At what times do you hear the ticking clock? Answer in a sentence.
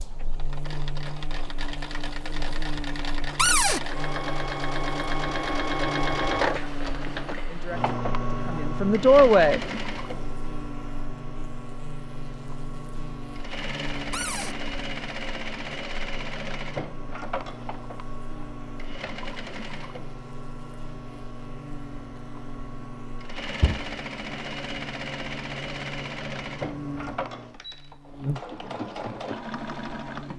You can't hear the ticking clock here.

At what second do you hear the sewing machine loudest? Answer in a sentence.
The loudest moment of the sewing machine is at 6 seconds.